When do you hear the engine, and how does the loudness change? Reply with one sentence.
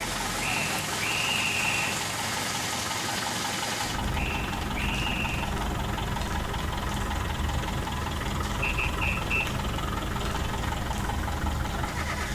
The engine can be heard from 0.0 to 12.3 s, at a steady volume.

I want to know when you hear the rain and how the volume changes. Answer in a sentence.
The rain can be heard from 0.0 to 12.3 s, at a steady volume.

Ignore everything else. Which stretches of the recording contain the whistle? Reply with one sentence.
You can hear the whistle from 0.4 to 2.0 s, from 4.2 to 5.5 s and from 8.6 to 9.4 s.